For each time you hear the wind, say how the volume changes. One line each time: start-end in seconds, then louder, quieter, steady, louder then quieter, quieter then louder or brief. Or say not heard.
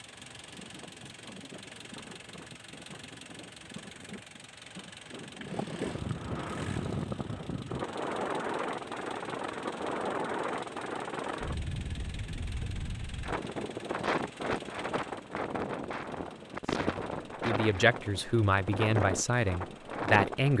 0.0-20.5 louder.